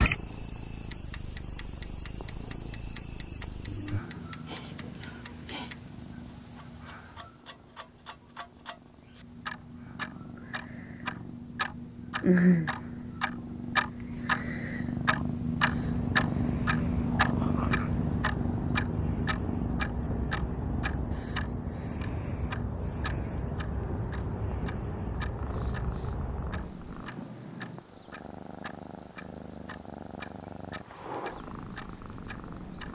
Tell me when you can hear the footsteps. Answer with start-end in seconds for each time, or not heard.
not heard.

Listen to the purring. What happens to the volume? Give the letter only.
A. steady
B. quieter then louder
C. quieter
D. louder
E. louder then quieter
E.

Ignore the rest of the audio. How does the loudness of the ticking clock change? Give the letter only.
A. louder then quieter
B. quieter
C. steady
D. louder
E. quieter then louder
A.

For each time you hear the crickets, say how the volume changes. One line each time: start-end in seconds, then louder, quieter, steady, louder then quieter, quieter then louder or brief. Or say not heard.
0.0-32.9 quieter then louder.